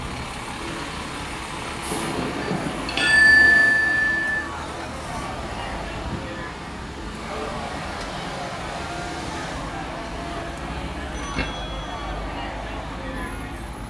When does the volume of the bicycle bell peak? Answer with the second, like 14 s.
3 s.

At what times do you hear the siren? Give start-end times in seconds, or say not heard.
not heard.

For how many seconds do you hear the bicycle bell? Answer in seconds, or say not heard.
3 s.